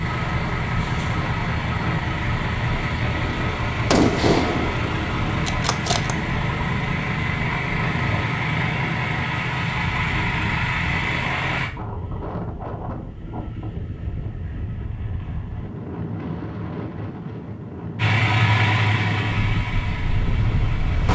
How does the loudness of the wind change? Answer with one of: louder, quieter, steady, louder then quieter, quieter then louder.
steady.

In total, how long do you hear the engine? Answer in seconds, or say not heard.
15 s.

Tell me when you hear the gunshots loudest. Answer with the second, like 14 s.
4 s.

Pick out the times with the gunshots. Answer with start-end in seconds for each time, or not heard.
3.1-6.2.